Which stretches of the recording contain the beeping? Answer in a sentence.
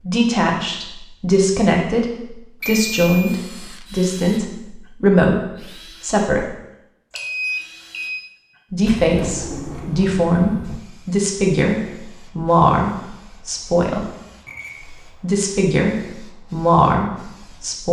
You can hear the beeping from 2.6 to 3.4 s, from 7.1 to 8.2 s and from 14.4 to 15.0 s.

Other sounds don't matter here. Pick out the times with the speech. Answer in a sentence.
You can hear the speech from 0.0 to 6.5 s, from 8.7 to 14.1 s and from 15.0 to 17.8 s.